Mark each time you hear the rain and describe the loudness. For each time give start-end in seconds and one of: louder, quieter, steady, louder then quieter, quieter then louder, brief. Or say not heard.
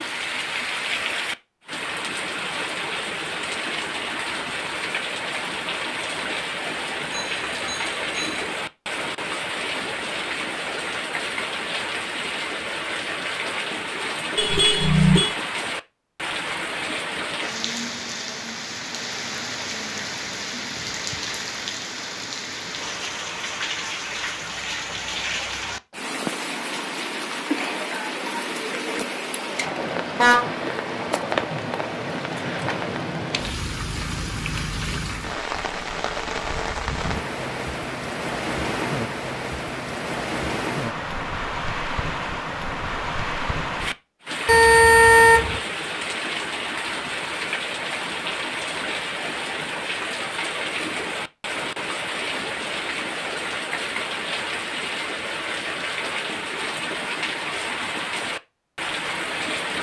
0.0-59.7 steady.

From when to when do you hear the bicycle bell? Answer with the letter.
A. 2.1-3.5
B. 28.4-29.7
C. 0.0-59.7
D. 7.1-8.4
D.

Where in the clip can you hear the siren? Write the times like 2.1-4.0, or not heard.
not heard.